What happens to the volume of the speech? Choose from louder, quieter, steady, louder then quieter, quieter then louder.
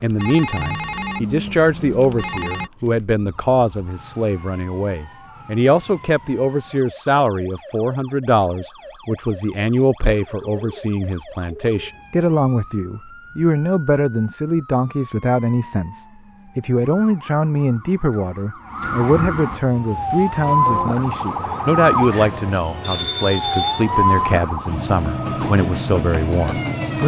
steady.